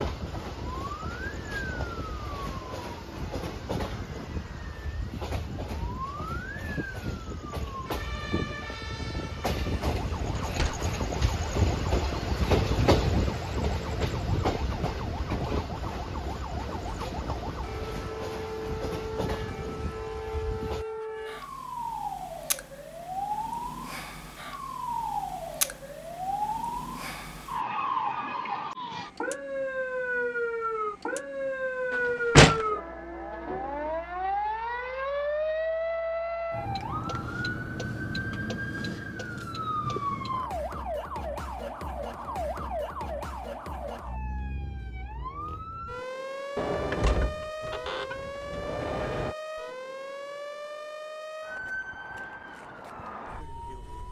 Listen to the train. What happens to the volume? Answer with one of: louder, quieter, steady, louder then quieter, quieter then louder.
louder then quieter.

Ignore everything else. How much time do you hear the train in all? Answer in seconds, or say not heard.
21 s.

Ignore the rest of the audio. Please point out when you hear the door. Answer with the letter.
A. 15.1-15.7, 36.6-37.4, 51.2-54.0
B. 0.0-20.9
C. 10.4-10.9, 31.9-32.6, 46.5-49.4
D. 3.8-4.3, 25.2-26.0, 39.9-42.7
C.